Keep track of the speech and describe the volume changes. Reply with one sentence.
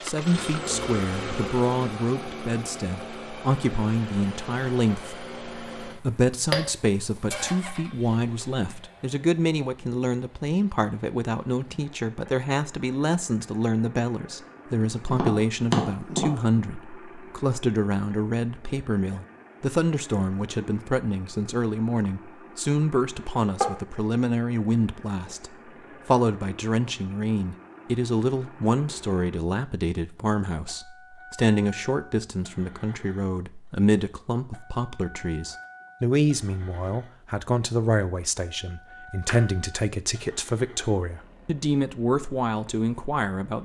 The volume of the speech stays about the same.